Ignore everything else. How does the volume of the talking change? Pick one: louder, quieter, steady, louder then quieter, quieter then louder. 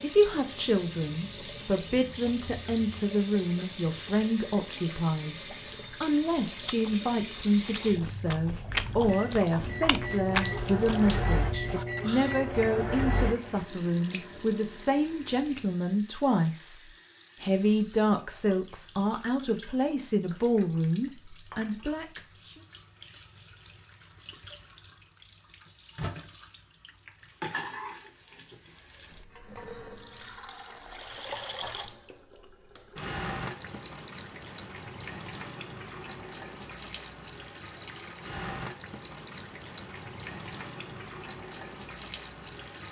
steady.